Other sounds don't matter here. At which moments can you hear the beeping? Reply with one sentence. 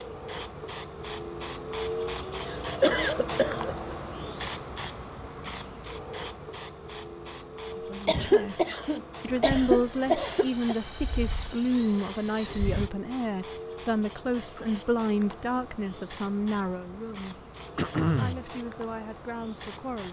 You can't hear the beeping here.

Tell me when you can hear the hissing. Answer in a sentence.
The hissing can be heard from 0.0 to 20.0 s.